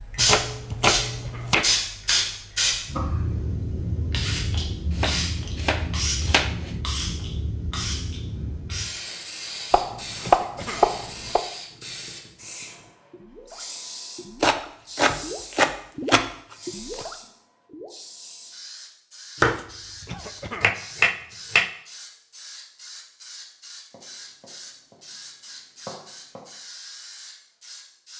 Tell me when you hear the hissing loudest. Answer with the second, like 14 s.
2 s.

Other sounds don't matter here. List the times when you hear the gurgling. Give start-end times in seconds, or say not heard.
11.7-17.9.